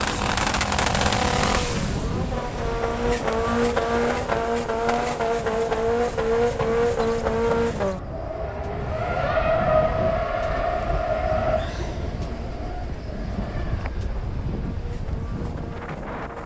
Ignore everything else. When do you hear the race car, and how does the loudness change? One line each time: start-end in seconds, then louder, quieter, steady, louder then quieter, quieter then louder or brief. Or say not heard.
0.0-16.4 quieter.